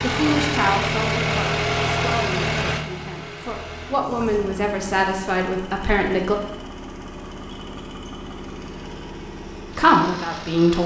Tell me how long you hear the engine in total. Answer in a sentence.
You can hear the engine for 11 seconds altogether.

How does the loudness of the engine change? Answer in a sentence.
The volume of the engine goes down.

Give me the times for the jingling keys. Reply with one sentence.
You can't hear the jingling keys here.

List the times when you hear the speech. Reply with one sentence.
The speech can be heard from 0.0 to 6.3 s and from 9.7 to 10.8 s.